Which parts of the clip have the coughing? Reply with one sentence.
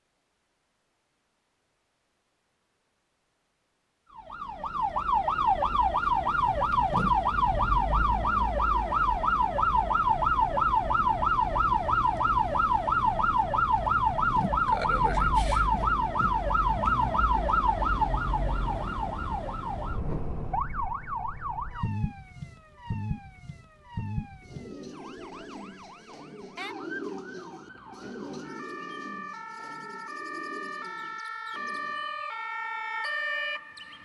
You can't hear the coughing here.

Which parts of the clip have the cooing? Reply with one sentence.
The cooing can be heard from 24.4 to 32.1 s.